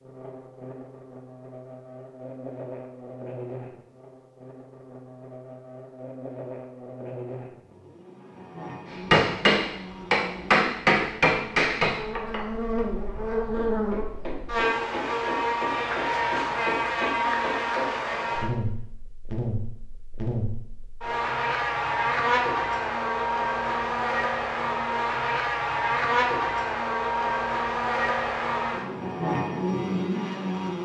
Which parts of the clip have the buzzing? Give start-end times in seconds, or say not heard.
0.0-30.7.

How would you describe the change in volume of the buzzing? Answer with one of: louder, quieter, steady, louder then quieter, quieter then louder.
louder.